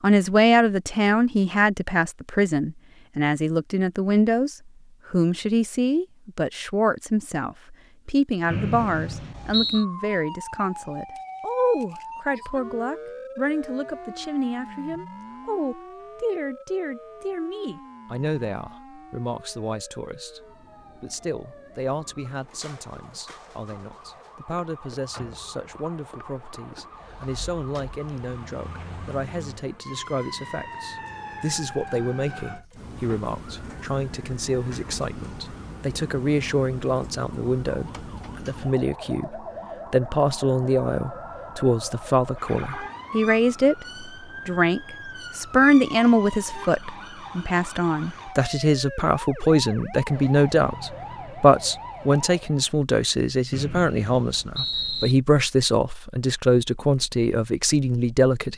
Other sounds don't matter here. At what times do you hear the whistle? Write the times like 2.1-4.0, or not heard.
8.5-9.8, 53.5-55.1.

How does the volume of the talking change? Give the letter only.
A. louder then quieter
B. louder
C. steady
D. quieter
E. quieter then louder
E.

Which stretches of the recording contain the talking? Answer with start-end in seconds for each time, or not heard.
0.0-58.5.